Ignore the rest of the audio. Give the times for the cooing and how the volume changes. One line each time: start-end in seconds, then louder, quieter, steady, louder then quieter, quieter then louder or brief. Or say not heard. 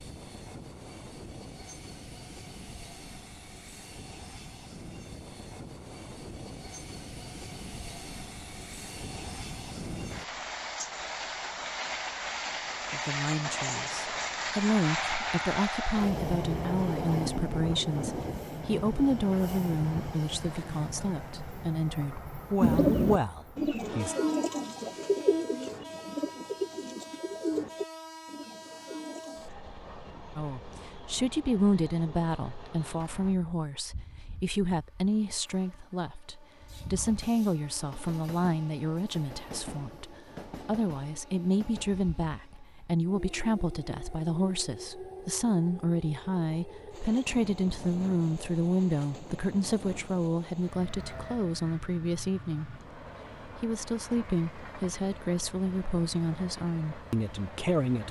22.6-29.6 quieter.